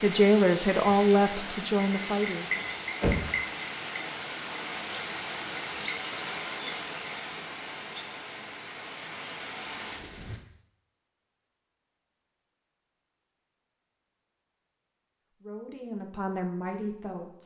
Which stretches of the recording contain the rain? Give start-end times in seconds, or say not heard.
0.0-10.4.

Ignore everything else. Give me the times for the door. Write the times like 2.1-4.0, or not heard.
2.6-3.2.